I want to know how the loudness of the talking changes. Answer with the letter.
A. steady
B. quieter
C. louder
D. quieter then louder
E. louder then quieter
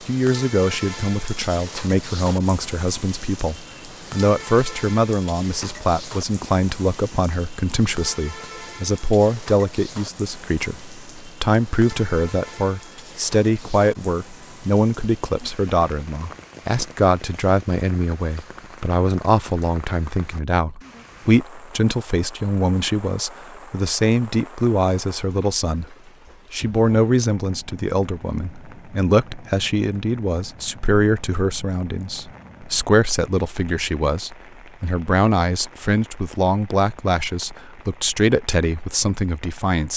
A.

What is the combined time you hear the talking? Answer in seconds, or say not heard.
40 s.